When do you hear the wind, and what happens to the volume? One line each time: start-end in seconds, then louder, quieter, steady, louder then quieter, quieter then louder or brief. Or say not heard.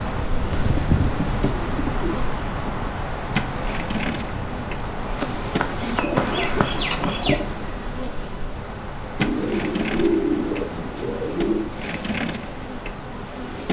0.0-13.6 quieter.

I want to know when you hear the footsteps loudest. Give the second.
6 s.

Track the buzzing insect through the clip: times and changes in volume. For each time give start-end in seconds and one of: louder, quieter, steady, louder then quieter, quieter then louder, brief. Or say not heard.
0.0-13.6 steady.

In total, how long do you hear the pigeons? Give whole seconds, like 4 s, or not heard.
7 s.